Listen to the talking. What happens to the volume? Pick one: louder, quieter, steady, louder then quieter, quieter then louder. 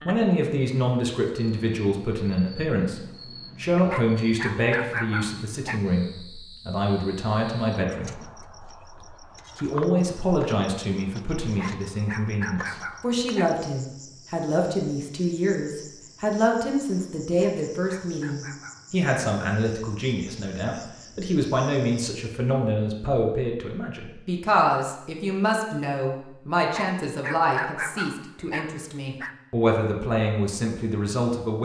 steady.